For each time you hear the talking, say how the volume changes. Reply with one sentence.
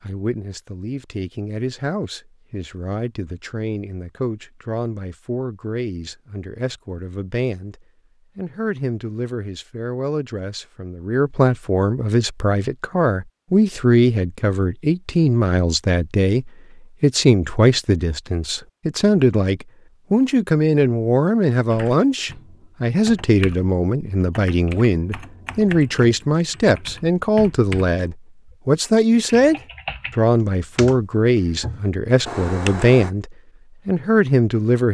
The talking can be heard from 0.0 to 34.9 s, getting louder.